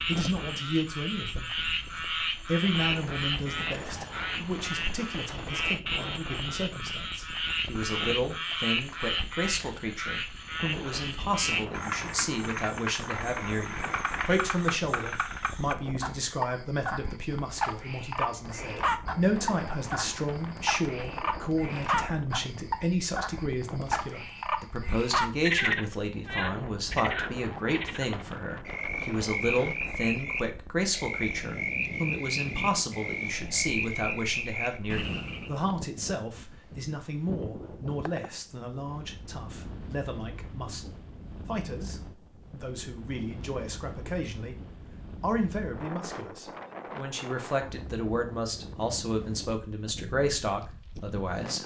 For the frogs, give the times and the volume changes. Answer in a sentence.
The frogs can be heard from 0.0 to 35.5 s, at a steady volume.